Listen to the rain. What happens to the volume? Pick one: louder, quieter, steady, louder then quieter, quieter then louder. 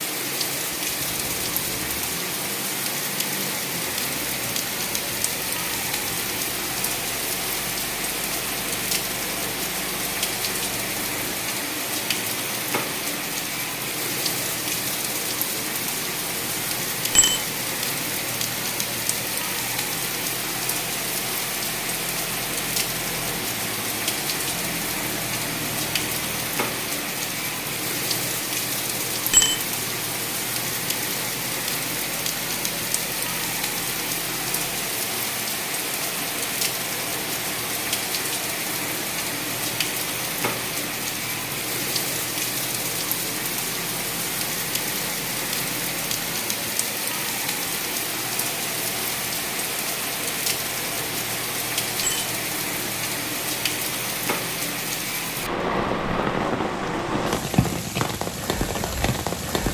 steady.